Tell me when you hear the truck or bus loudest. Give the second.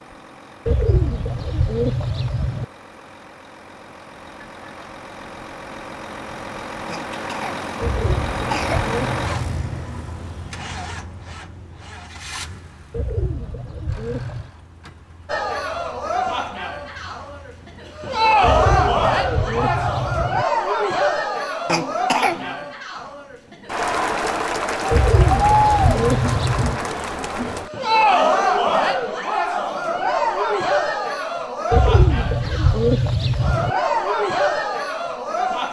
9 s.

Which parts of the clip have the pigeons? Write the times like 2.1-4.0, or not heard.
0.7-2.6, 7.8-9.8, 12.9-14.5, 18.4-20.4, 24.9-26.8, 31.7-33.7.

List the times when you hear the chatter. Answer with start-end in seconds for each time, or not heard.
15.2-35.6.